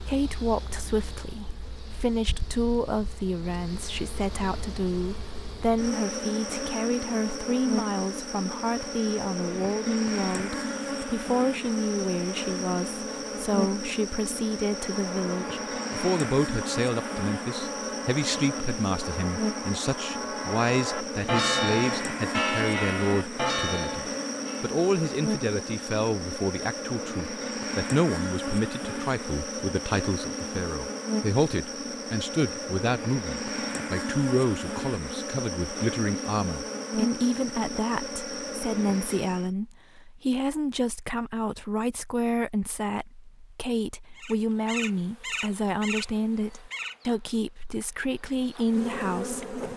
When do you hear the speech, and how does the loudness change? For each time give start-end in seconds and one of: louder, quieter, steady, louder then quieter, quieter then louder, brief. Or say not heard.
0.0-49.7 steady.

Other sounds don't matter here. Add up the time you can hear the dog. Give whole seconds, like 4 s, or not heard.
not heard.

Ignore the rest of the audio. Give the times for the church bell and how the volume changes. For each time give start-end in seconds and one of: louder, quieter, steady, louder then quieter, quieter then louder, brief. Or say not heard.
14.8-24.7 louder.